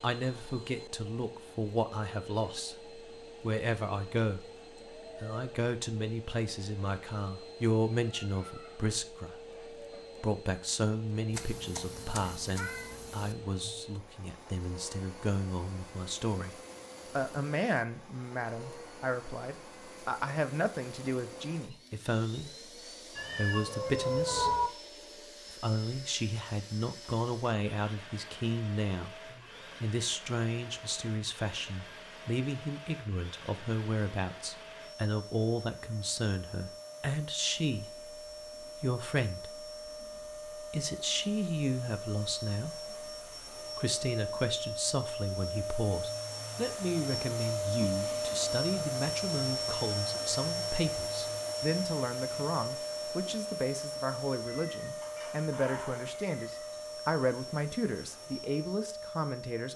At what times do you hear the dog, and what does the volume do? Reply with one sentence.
The dog can't be heard in this clip.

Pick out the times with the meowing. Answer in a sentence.
You can hear the meowing from 11.3 to 13.3 s, from 23.1 to 24.7 s and from 54.5 to 56.8 s.